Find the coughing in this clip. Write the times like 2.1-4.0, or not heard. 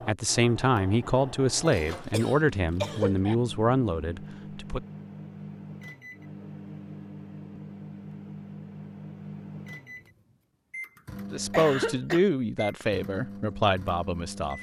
1.7-3.4, 11.3-12.2.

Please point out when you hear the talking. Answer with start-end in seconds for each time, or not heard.
0.1-4.8, 11.3-14.5.